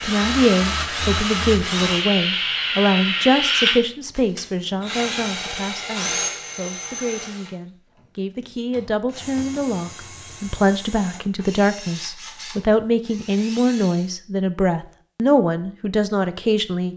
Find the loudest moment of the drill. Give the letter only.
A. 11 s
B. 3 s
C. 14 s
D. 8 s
B.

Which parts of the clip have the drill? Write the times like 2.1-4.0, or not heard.
0.0-14.1.